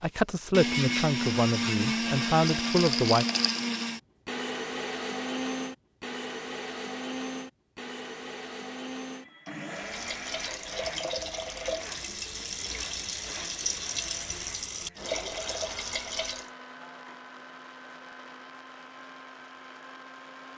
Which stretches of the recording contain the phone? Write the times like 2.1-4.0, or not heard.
not heard.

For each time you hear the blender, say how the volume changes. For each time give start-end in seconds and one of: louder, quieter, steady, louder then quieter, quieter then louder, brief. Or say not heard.
0.0-20.5 quieter.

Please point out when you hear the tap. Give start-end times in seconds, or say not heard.
9.7-16.5.